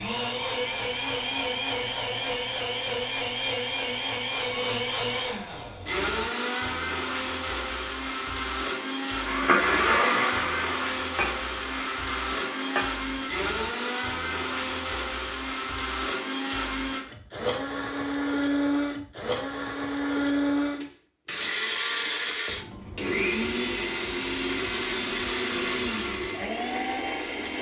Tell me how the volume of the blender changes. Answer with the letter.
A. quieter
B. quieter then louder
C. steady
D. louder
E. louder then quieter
C.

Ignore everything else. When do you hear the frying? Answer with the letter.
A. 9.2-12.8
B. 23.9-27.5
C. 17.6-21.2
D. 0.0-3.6
A.